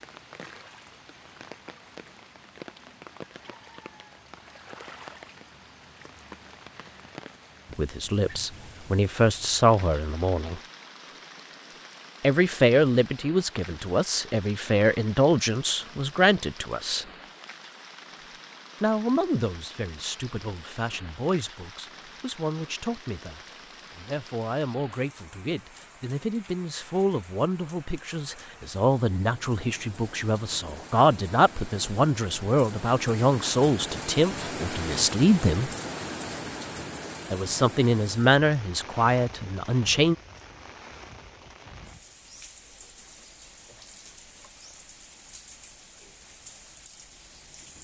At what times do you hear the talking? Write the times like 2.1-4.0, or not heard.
7.7-10.6, 12.2-17.1, 18.8-35.7, 37.3-40.1.